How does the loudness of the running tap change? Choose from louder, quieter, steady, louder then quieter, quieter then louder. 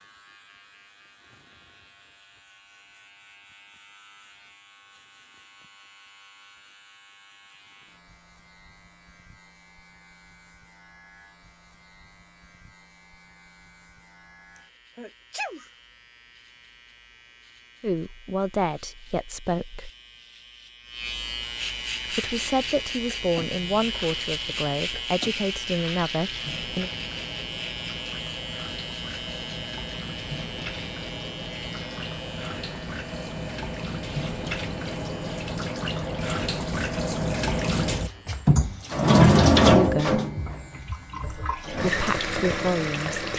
louder.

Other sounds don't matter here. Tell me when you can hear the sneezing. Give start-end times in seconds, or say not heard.
14.6-15.7.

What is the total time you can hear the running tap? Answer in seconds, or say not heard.
21 s.